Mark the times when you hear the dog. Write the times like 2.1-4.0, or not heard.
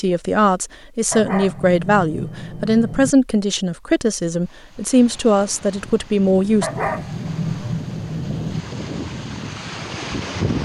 1.1-3.1, 6.6-8.7.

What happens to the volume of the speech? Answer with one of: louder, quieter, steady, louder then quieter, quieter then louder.
steady.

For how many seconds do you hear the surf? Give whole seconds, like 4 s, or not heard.
6 s.